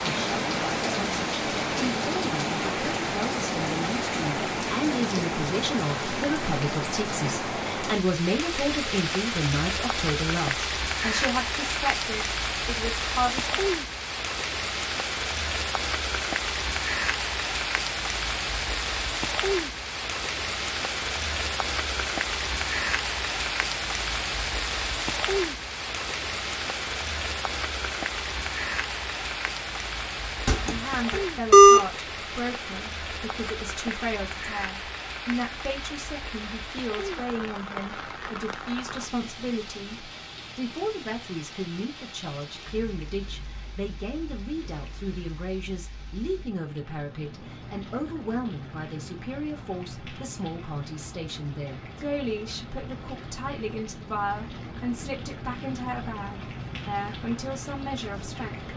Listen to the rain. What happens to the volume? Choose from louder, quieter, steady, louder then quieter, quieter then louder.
quieter.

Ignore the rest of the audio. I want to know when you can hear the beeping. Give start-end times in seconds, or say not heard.
30.4-31.8.